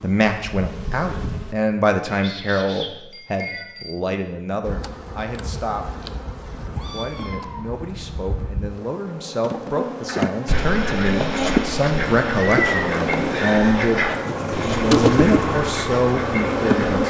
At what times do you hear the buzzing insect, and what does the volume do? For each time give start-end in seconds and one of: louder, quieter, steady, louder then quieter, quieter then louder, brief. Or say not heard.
0.0-1.6 brief
4.6-17.0 louder.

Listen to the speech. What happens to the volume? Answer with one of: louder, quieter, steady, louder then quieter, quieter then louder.
quieter then louder.